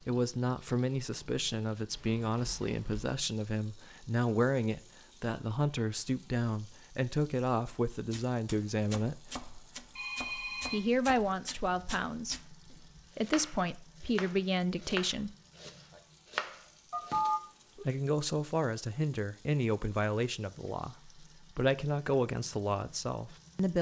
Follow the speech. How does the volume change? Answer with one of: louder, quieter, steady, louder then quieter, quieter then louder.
steady.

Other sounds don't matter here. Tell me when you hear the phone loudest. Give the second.
17 s.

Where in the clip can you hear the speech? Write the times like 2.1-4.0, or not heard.
0.0-9.4, 10.7-15.3, 17.8-23.7.